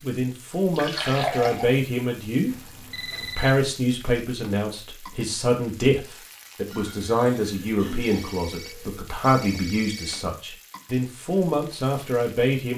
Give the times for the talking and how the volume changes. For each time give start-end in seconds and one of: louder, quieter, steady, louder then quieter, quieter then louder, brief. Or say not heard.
0.0-2.5 brief
3.2-12.7 steady.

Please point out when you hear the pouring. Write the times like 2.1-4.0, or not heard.
0.8-1.8, 6.7-8.2.